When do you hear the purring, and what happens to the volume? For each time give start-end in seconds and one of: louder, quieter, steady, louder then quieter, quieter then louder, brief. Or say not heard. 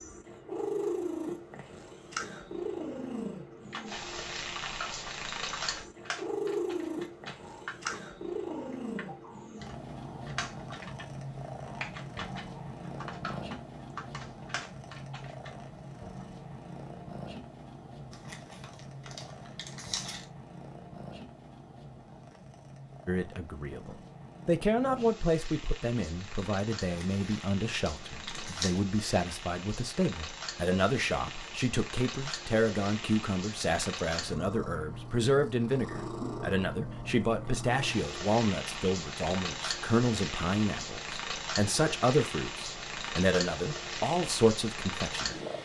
0.0-45.6 quieter then louder.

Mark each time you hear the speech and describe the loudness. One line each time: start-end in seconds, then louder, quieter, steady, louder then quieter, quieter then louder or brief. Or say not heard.
23.1-45.4 steady.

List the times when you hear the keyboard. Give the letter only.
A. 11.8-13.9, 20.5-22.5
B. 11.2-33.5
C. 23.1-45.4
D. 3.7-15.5
D.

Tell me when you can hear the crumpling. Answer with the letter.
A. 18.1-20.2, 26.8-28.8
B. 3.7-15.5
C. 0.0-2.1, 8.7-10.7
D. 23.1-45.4
A.